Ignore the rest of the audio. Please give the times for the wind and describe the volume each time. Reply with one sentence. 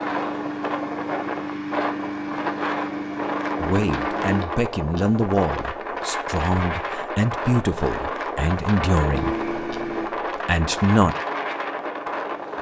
You can hear the wind from 0.0 to 12.5 s, at a steady volume.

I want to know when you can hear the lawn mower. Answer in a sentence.
You can hear the lawn mower from 0.0 to 4.5 s and from 9.1 to 12.5 s.